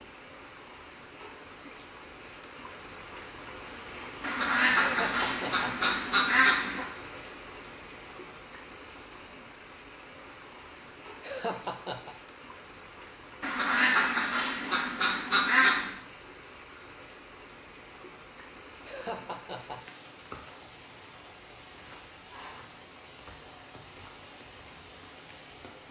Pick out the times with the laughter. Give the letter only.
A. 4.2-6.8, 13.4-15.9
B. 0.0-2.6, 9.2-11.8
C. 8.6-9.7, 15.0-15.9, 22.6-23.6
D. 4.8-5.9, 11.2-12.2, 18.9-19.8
D.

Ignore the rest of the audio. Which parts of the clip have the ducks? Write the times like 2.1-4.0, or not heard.
4.2-6.8, 13.4-15.9.